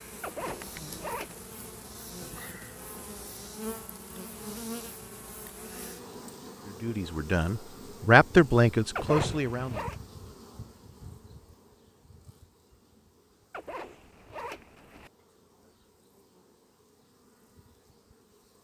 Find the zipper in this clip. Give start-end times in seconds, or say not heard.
0.2-1.4, 8.9-9.9, 13.5-15.1.